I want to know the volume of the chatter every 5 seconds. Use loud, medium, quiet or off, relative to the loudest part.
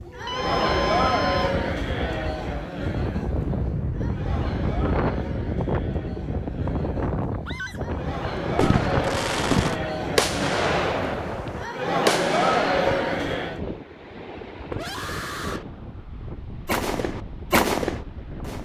loud, medium, loud, off.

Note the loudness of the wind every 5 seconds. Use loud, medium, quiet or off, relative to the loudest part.
loud, loud, medium, medium.